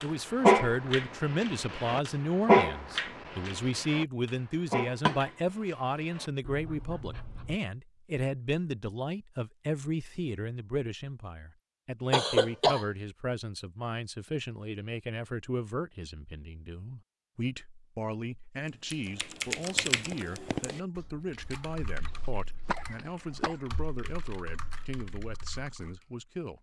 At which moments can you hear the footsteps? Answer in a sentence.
The footsteps can't be heard in this clip.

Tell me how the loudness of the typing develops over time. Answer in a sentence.
The loudness of the typing goes down.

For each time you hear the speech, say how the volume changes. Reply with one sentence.
The speech can be heard from 0.0 to 26.5 s, getting quieter.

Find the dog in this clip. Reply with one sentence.
You can hear the dog from 0.0 to 7.6 s.